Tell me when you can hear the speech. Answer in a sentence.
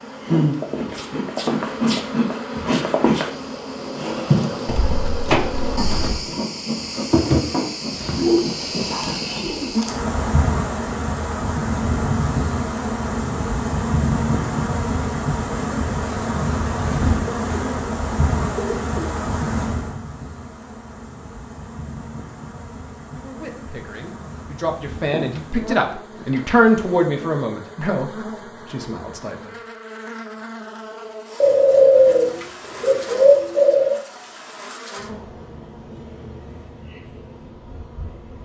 You can hear the speech from 23.1 to 29.6 s.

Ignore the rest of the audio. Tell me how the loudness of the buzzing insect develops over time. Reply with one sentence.
The volume of the buzzing insect goes down.